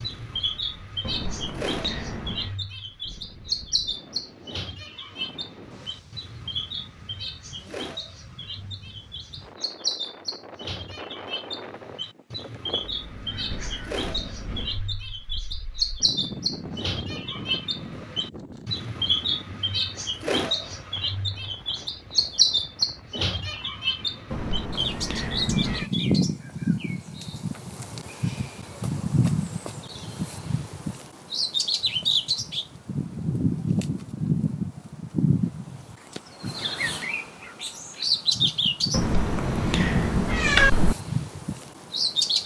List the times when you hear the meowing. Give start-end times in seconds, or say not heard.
1.0-2.5, 24.3-25.9, 38.9-41.0.